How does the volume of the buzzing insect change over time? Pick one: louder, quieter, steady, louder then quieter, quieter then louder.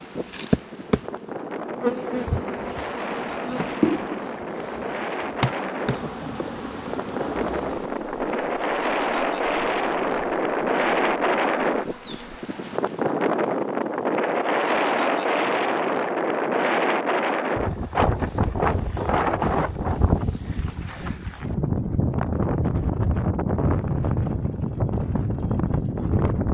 quieter.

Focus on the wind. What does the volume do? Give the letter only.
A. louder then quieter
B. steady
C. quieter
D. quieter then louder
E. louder
E.